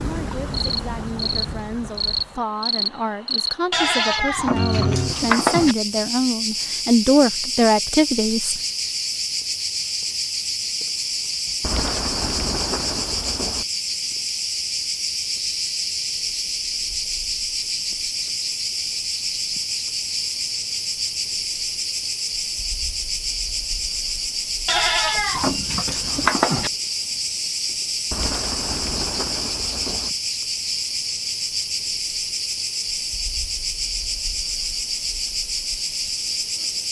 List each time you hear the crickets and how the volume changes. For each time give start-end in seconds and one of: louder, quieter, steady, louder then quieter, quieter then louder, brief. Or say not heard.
0.0-36.8 steady.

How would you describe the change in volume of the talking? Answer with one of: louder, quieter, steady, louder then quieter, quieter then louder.
louder.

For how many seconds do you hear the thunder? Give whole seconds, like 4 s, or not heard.
4 s.